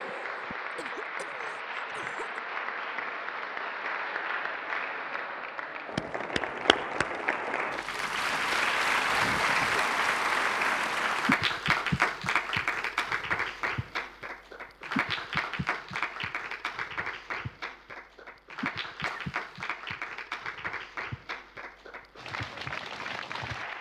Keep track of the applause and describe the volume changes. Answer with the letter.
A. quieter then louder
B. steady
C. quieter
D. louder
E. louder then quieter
E.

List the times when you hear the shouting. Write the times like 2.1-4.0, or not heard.
not heard.